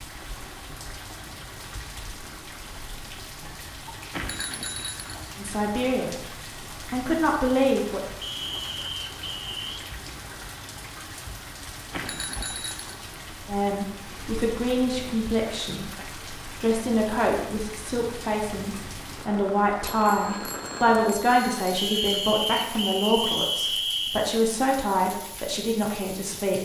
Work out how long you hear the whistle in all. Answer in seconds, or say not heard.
4 s.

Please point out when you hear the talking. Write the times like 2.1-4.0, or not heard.
5.3-6.1, 6.8-8.0, 13.4-26.5.